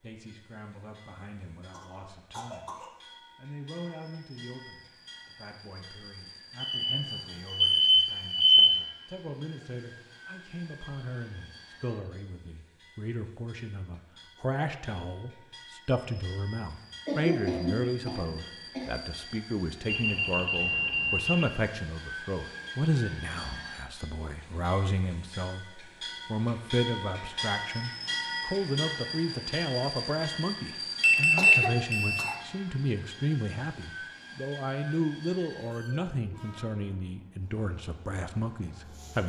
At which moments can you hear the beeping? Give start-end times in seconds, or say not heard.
6.6-8.7, 19.9-21.4, 31.0-32.4.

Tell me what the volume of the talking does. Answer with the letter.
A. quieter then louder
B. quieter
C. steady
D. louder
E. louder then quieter
D.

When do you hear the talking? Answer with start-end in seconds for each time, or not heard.
0.0-39.2.